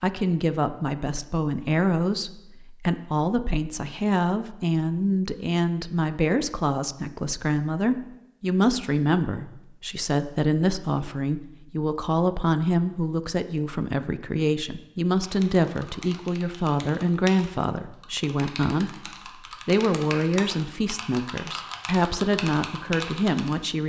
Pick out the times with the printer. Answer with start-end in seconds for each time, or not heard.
not heard.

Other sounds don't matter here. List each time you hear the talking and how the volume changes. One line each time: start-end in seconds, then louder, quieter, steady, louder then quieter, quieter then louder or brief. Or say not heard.
0.0-23.8 steady.